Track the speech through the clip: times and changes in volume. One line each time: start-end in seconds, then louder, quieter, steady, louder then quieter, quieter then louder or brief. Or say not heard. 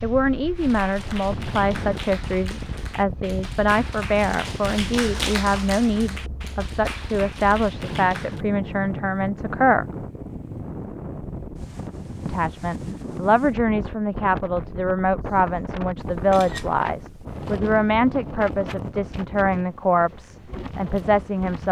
0.0-9.8 steady
12.2-21.6 steady.